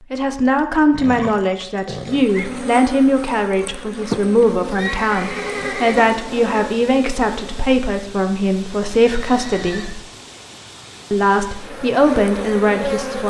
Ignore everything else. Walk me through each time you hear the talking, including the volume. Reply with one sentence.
The talking can be heard from 0.1 to 10.0 s, at a steady volume; and briefly from 11.1 to 13.2 s.